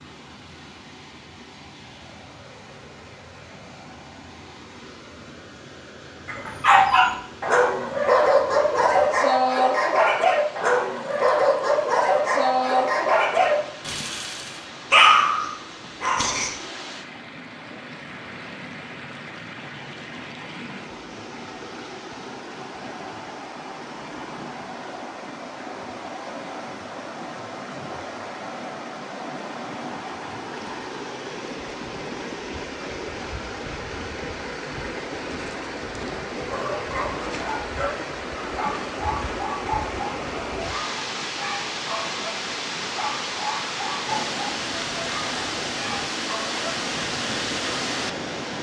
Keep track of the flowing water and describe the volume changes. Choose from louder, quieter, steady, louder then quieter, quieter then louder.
louder.